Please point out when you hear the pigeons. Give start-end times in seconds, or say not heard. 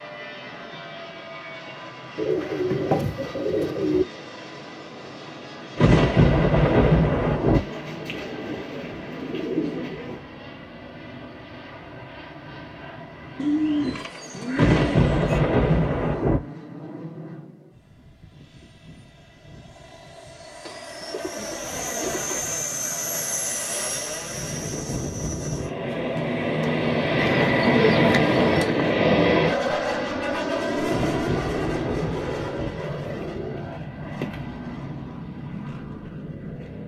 2.1-4.0, 7.5-10.2, 13.3-15.4, 20.6-22.6, 27.1-28.9, 33.0-34.5.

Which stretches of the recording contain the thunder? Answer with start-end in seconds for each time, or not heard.
5.8-7.6, 14.6-16.4, 30.9-32.7.